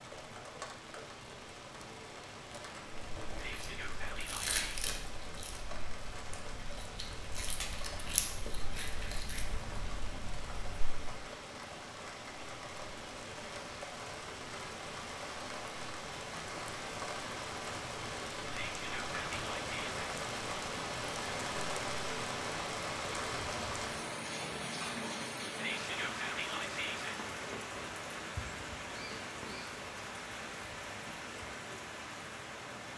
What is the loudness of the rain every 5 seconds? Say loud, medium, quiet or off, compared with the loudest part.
medium, medium, medium, loud, loud, loud, medium.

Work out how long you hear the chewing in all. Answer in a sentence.
You can hear the chewing for 8 seconds altogether.